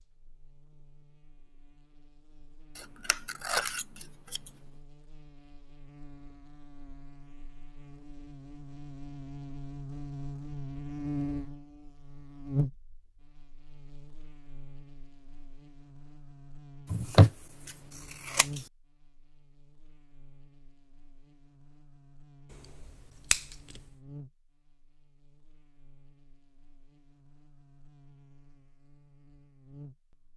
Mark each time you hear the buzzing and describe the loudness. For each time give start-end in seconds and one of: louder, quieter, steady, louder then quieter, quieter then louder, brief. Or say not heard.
0.0-30.3 louder then quieter.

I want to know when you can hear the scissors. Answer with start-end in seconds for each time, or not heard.
2.8-4.5, 16.9-18.6, 22.5-23.8.